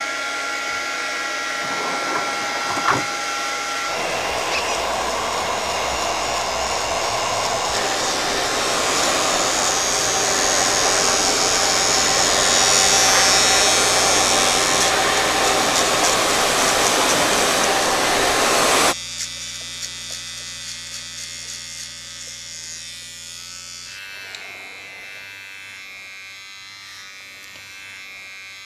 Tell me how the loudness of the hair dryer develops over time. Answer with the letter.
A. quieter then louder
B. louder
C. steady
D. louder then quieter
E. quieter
B.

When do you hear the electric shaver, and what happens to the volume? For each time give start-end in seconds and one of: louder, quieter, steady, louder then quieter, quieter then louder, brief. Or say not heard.
0.0-28.6 louder then quieter.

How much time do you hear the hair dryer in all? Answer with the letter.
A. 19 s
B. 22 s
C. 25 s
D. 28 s
A.